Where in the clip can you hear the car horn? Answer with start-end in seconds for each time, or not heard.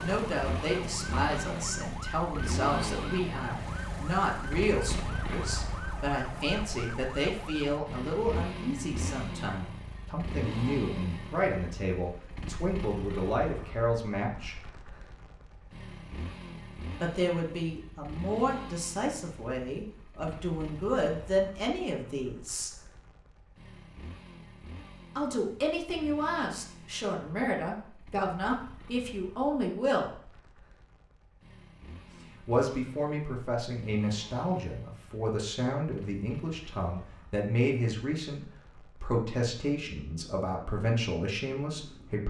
not heard.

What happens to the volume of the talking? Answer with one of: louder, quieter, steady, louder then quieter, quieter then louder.
steady.